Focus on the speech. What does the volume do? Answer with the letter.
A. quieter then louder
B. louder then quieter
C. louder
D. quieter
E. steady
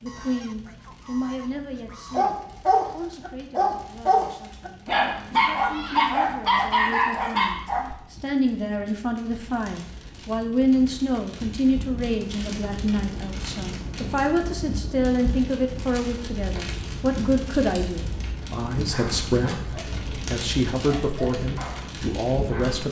C.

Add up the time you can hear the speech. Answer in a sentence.
The speech can be heard for 23 seconds in total.